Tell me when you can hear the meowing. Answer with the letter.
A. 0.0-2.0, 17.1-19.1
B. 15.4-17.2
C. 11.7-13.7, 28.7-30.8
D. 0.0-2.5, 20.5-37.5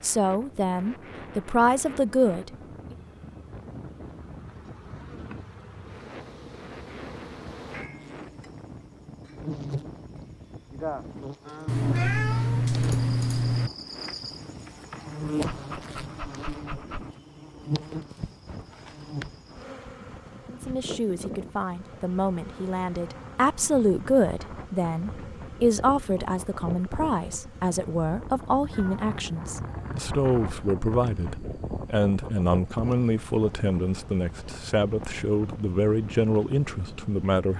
C.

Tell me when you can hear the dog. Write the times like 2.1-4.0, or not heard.
15.4-17.2.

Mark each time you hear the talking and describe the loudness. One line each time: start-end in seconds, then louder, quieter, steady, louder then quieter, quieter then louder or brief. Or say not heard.
0.0-2.5 brief
20.5-37.5 steady.